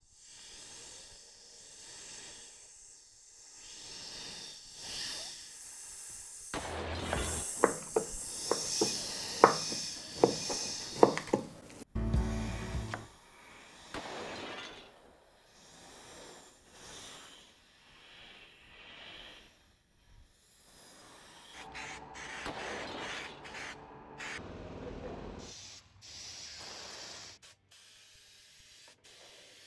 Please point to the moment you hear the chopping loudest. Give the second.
11 s.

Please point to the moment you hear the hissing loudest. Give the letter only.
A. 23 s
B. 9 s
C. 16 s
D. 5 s
B.